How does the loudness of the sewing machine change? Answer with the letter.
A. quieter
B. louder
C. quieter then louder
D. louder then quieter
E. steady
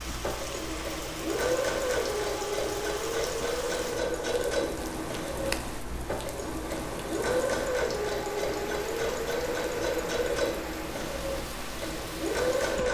E.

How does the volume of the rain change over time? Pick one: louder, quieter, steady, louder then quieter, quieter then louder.
steady.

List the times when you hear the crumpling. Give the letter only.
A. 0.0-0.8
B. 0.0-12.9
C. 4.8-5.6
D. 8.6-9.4
C.